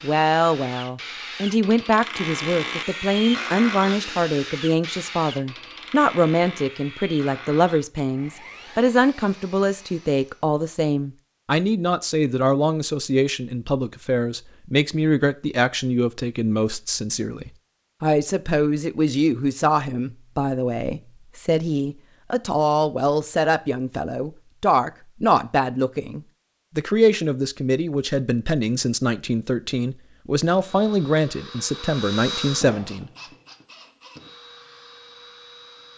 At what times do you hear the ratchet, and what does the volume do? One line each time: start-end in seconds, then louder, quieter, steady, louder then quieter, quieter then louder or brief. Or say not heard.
not heard.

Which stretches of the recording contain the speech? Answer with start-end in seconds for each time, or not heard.
0.0-33.1.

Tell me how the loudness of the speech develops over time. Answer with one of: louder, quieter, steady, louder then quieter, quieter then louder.
steady.